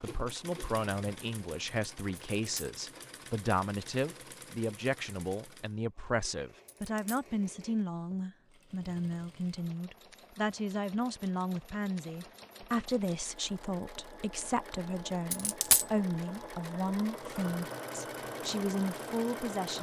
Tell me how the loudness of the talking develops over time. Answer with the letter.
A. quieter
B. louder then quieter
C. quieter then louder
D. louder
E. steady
E.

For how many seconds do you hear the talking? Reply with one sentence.
The talking can be heard for 20 seconds in total.